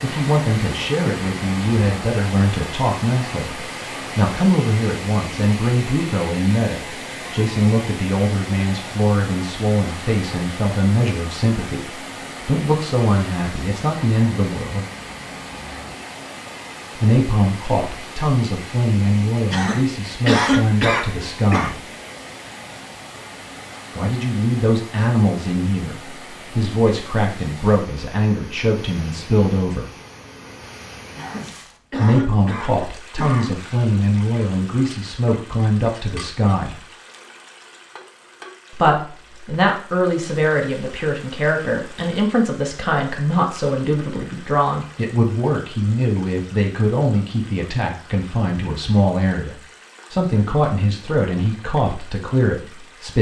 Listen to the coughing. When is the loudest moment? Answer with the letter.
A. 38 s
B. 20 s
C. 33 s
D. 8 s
B.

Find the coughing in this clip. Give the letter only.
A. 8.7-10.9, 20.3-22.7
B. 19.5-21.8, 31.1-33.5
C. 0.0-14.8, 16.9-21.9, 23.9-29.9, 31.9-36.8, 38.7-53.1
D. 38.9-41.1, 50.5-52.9
B.